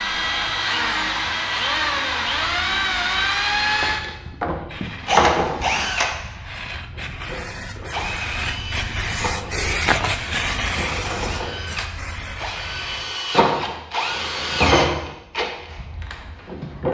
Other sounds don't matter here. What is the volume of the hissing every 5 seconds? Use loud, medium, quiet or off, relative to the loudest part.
medium, loud, loud, off.